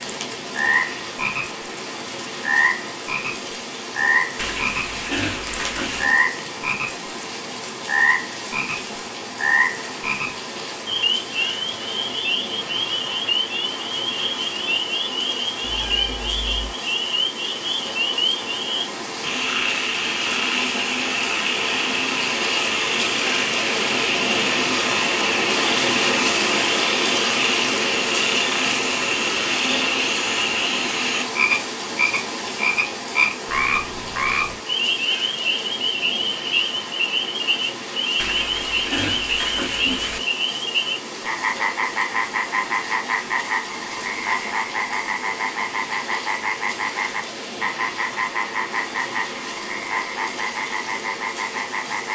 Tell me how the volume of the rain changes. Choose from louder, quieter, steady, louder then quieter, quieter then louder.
louder then quieter.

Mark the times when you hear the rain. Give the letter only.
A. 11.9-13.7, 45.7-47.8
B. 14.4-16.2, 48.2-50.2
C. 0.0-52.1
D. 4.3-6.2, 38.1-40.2
C.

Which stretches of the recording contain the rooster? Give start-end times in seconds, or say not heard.
not heard.